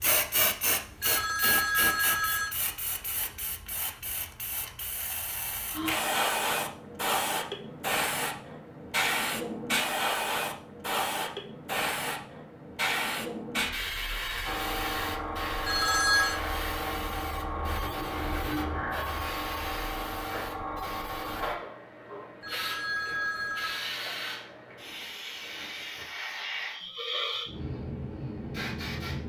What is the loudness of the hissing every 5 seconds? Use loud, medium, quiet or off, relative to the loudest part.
loud, loud, loud, loud, medium, medium.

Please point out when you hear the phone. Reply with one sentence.
You can hear the phone from 1.0 to 2.5 s, from 15.7 to 16.4 s and from 22.4 to 23.9 s.